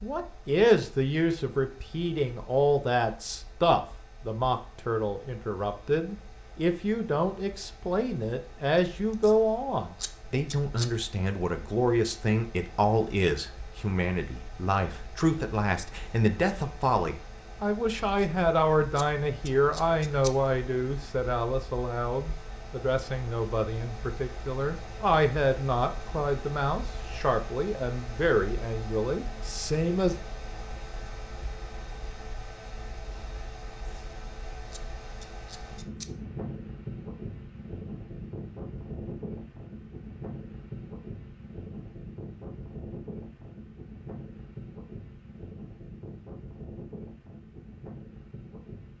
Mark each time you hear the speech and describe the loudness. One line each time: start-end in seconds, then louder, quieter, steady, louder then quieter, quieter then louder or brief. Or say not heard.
0.0-30.1 steady.